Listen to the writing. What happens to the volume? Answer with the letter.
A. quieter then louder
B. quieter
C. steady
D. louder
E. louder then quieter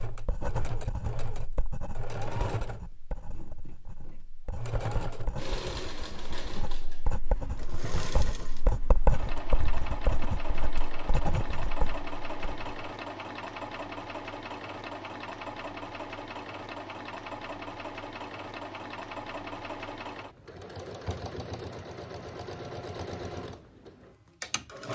A.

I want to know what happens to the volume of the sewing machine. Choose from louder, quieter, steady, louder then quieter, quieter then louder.
steady.